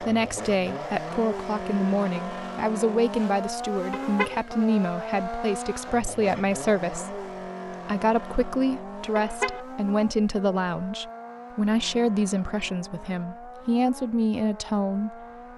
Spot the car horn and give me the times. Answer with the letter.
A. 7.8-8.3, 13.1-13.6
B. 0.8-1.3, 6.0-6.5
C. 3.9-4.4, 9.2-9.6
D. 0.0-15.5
C.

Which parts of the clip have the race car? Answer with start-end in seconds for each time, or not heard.
0.0-15.5.